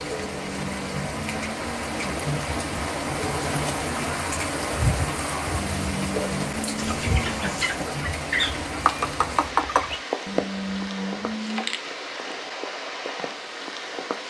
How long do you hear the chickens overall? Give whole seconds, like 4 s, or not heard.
3 s.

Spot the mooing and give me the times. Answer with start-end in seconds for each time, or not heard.
0.2-2.1, 5.5-7.6, 10.2-11.8.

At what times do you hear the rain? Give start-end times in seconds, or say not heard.
0.0-14.2.